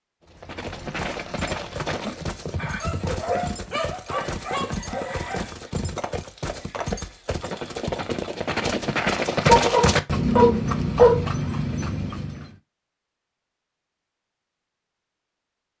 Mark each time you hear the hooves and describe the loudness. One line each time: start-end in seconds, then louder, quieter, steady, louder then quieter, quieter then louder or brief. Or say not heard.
0.2-12.6 louder.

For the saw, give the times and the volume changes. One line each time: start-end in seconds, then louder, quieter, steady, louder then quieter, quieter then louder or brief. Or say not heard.
not heard.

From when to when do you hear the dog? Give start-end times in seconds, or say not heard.
2.8-5.5, 9.4-11.2.